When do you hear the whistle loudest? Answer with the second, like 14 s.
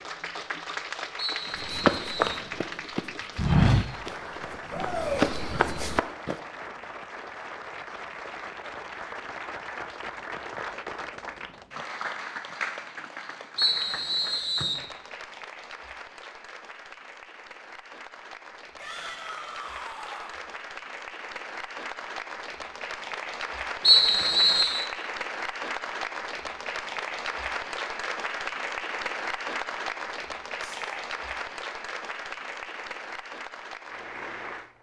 24 s.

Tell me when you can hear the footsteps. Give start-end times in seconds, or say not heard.
1.4-6.3.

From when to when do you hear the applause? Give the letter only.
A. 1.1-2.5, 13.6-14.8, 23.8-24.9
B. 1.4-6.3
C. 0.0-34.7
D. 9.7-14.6
C.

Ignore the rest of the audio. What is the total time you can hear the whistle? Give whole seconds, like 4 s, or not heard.
4 s.